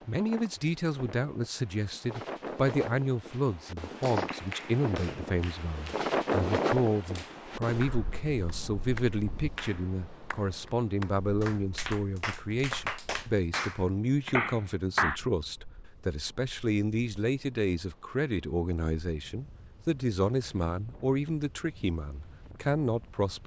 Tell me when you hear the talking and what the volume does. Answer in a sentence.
You can hear the talking from 0.1 to 23.4 s, at a steady volume.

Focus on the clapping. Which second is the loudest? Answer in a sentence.
The loudest moment of the clapping is at 15 seconds.